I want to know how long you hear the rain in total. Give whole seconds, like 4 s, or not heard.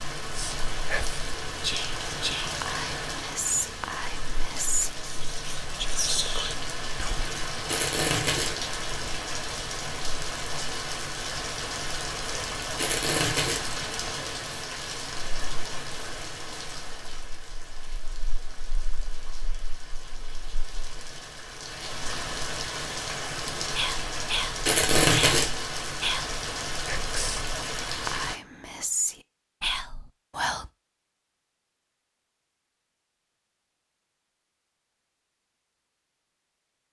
28 s.